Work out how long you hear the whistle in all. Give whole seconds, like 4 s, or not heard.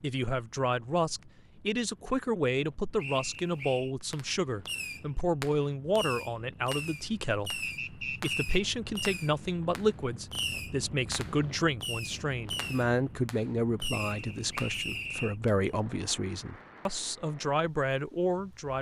3 s.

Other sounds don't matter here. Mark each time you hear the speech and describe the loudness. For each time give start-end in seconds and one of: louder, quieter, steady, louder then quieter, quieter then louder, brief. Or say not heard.
0.0-18.7 steady.